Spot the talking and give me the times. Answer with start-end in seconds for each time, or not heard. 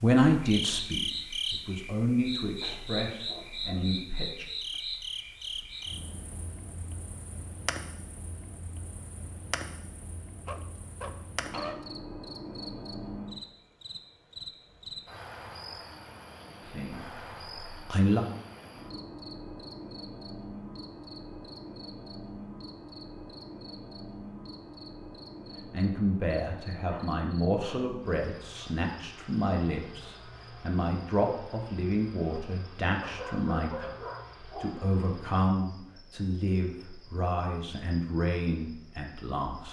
0.0-4.5, 16.6-18.2, 25.7-39.6.